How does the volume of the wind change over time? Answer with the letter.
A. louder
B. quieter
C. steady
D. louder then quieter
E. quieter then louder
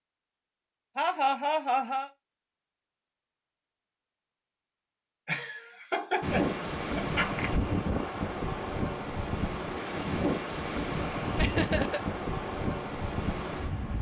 C.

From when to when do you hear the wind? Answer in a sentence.
You can hear the wind from 6.2 to 13.9 s.